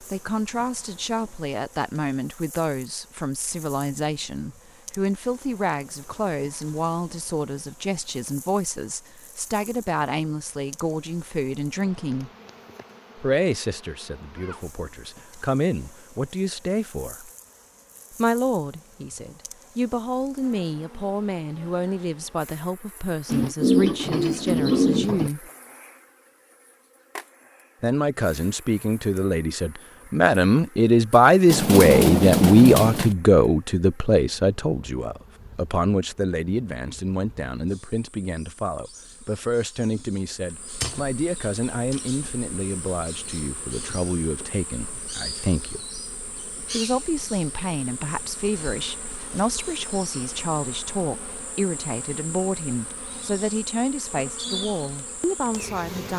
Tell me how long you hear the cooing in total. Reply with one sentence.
You can hear the cooing for 4 seconds altogether.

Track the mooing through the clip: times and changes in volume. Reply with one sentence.
The mooing can't be heard in this clip.